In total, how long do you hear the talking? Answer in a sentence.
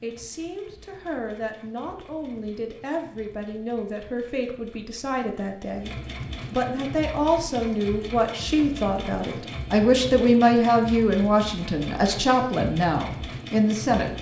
The talking can be heard for 14 seconds in total.